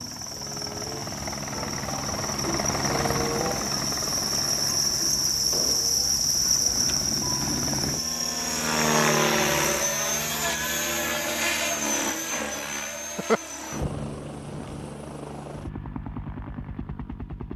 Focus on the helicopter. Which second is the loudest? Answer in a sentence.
The volume of the helicopter peaks at 9 seconds.